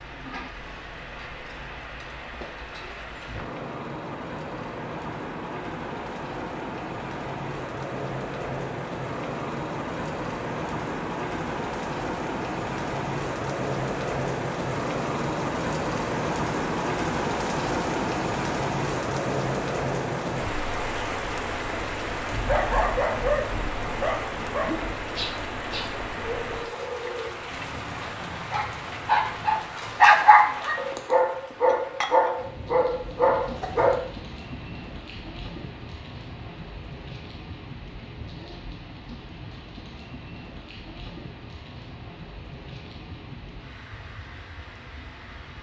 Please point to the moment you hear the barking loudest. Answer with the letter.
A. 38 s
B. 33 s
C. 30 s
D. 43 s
C.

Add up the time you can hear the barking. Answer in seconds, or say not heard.
12 s.